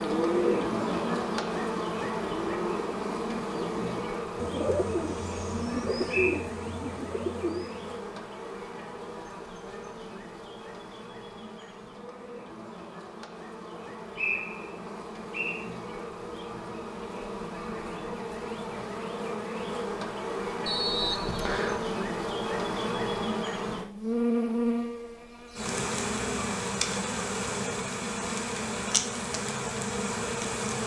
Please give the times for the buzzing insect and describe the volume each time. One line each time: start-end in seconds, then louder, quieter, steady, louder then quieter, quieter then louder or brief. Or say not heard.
0.0-30.8 quieter then louder.